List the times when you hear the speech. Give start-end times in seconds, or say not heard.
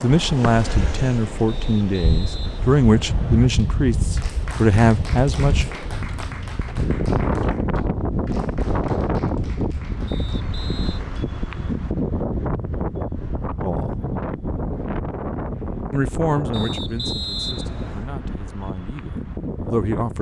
0.0-5.7, 13.6-14.0, 15.9-20.1.